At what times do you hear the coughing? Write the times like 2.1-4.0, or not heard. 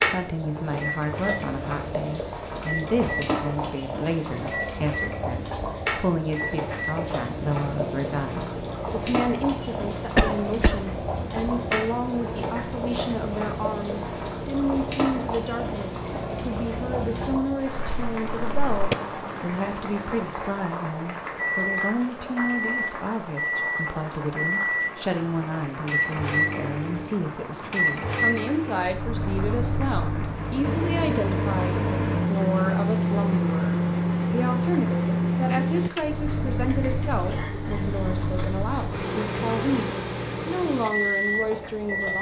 10.2-10.8, 17.6-18.9, 37.2-38.0.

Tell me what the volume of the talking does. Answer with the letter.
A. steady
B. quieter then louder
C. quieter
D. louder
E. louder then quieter
A.